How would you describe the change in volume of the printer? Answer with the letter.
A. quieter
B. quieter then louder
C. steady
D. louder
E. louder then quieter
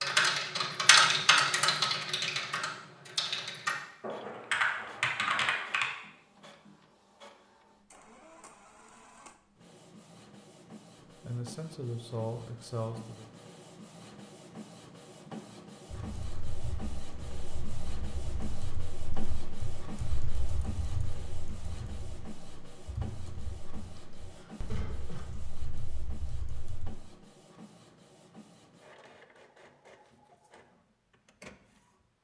E.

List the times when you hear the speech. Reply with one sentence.
You can hear the speech from 11.2 to 13.2 s.